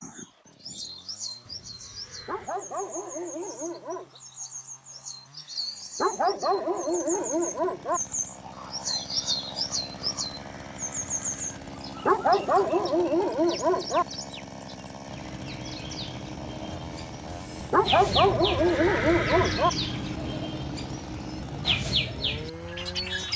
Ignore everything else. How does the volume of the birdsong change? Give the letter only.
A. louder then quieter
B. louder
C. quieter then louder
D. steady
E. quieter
B.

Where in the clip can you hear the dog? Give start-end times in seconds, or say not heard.
2.2-4.2, 6.0-8.0, 12.1-14.1, 17.7-19.7.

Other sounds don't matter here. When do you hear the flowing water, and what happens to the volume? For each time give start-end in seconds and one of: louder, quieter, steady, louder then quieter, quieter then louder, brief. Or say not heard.
not heard.